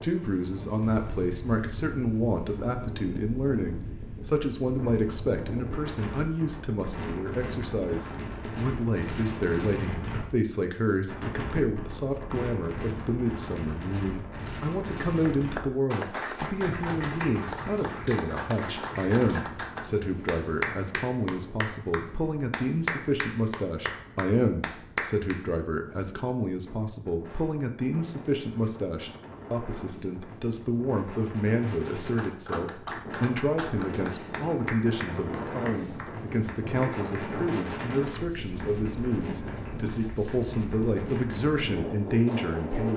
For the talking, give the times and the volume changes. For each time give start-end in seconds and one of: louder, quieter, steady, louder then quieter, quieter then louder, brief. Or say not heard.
0.0-42.9 steady.